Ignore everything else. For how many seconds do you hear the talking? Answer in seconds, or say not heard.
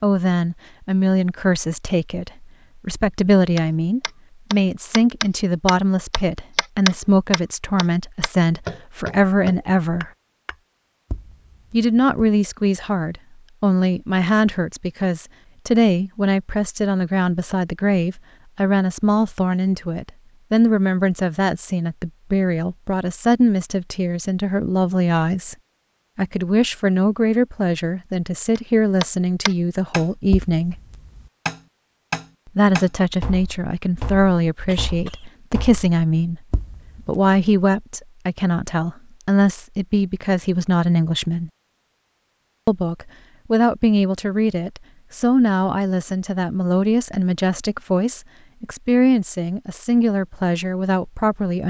46 s.